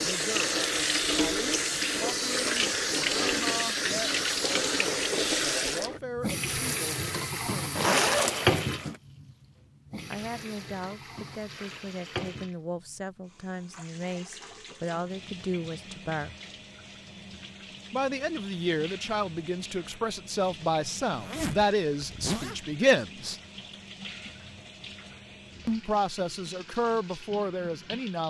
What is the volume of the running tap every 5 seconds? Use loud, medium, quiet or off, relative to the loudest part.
loud, loud, quiet, quiet, quiet, quiet.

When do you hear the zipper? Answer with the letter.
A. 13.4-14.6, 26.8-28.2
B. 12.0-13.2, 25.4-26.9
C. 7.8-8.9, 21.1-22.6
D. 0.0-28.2
C.